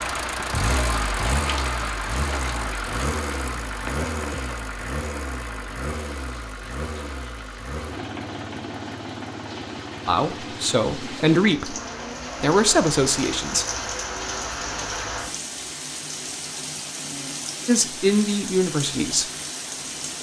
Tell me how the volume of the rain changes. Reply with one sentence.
The loudness of the rain goes down, then up.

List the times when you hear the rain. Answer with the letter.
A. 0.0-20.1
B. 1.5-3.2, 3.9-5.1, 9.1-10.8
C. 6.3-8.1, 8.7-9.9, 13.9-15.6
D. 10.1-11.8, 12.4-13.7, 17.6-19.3
A.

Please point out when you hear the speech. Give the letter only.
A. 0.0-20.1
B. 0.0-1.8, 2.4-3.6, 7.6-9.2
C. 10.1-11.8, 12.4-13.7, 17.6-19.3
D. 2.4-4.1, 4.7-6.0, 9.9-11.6
C.